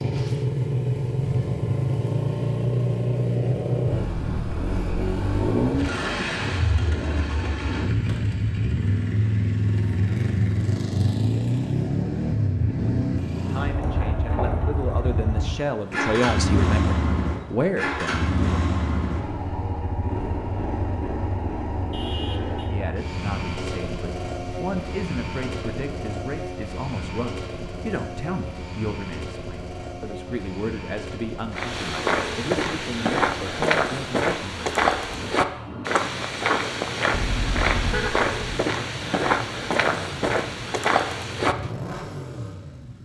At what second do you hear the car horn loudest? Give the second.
38 s.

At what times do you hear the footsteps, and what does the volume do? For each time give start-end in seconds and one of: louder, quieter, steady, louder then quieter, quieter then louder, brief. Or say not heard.
31.5-41.5 steady.